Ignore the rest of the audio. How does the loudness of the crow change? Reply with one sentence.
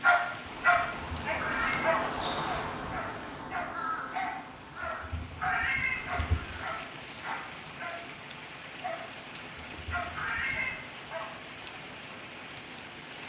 The volume of the crow goes down.